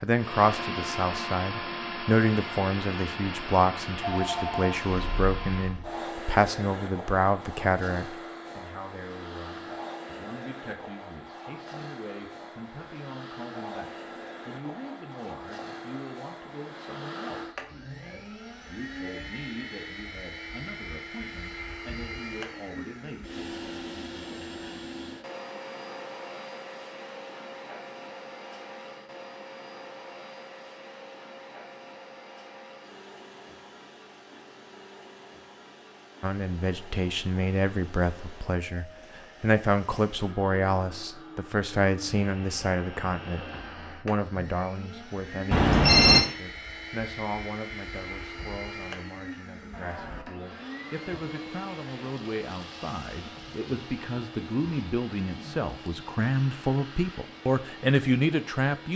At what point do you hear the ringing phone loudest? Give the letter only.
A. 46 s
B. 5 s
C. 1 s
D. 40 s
A.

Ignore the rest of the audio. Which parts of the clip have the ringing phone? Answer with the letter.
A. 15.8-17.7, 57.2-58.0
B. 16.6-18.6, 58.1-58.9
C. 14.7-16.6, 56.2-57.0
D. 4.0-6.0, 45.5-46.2
D.